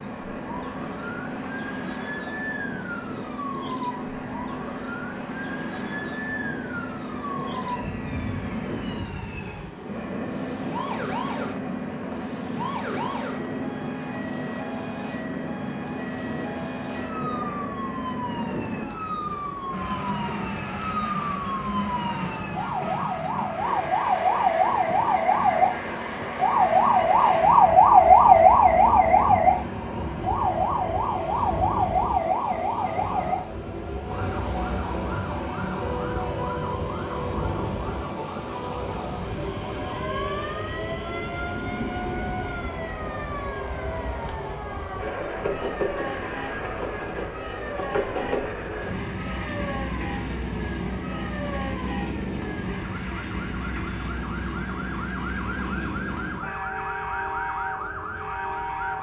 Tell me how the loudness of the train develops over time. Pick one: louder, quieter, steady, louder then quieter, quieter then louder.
steady.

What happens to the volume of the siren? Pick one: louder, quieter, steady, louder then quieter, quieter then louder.
louder then quieter.